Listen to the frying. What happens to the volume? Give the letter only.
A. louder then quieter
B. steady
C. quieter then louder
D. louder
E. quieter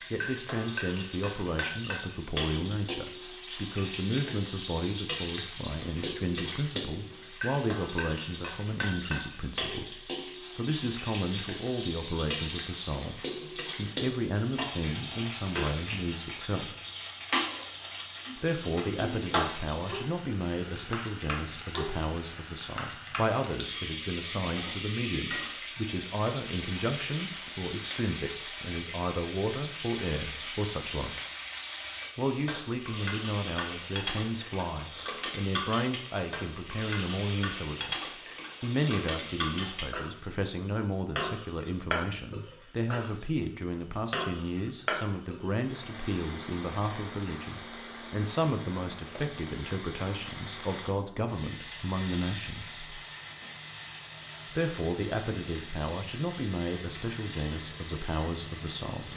B.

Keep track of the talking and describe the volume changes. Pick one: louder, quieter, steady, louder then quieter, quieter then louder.
steady.